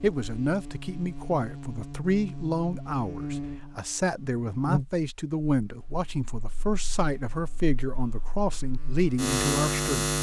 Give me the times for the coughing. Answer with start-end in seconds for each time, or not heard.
not heard.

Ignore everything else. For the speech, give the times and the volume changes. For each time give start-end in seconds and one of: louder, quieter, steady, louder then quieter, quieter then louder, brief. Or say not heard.
0.0-10.1 steady.